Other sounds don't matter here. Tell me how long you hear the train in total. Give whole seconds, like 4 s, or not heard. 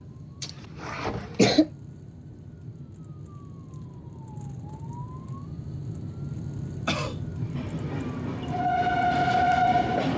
3 s.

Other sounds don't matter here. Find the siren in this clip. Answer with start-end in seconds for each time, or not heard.
0.0-9.8.